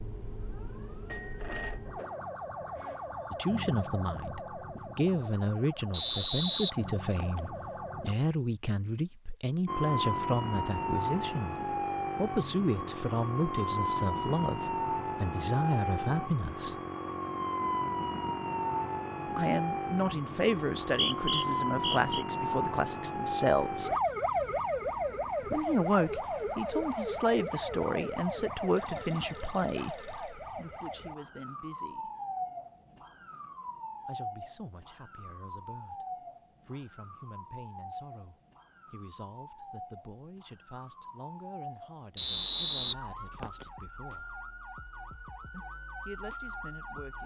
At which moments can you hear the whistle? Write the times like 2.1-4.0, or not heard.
5.9-7.4, 20.9-22.2, 42.1-43.6.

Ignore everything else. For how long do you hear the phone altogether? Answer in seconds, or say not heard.
3 s.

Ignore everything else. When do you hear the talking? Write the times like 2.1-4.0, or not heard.
3.3-11.6, 12.2-16.8, 19.4-24.0, 25.5-32.1, 34.0-44.5, 45.5-47.2.